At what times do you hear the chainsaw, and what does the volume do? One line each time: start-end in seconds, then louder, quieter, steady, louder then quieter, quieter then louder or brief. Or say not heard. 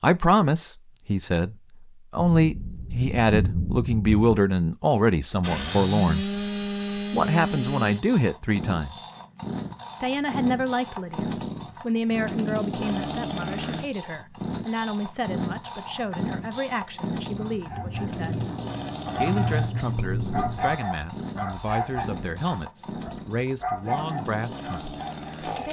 5.4-25.6 quieter.